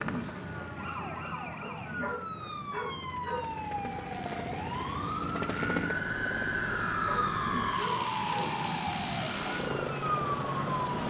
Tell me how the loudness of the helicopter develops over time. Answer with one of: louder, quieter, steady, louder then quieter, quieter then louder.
louder.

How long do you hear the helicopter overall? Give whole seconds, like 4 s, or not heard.
11 s.